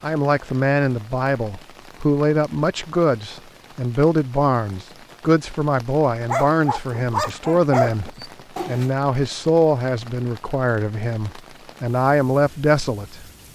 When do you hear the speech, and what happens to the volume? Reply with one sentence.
You can hear the speech from 0.0 to 13.5 s, at a steady volume.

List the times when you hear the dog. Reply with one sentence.
The dog can be heard from 6.2 to 8.9 s.